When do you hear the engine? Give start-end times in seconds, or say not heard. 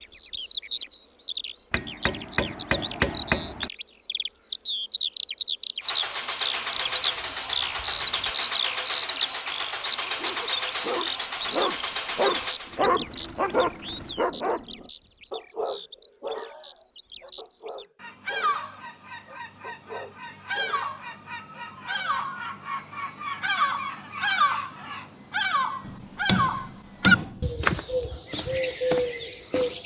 5.8-14.2.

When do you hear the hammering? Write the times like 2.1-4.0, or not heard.
1.7-3.7, 25.9-27.4.